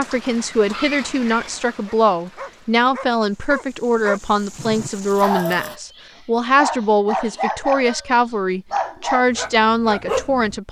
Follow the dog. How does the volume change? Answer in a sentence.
The volume of the dog goes up.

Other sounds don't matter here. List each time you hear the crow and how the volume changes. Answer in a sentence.
The crow can't be heard in this clip.